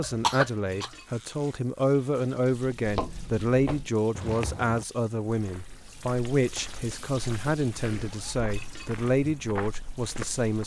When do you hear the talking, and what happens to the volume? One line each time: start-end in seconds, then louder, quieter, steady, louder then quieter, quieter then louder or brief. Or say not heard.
0.0-10.6 steady.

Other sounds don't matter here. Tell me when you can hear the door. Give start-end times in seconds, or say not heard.
not heard.